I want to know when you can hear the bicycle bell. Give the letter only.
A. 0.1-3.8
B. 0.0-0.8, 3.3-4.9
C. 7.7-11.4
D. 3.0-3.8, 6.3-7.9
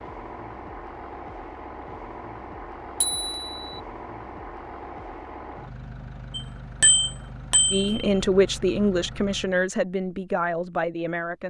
D.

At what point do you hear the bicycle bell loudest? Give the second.
7 s.